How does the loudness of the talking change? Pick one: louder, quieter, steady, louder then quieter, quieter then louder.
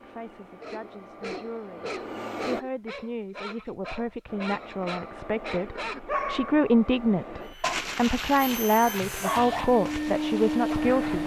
louder.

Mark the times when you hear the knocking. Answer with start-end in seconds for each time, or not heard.
not heard.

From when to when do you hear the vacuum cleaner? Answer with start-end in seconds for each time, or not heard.
0.0-2.6, 4.2-11.2.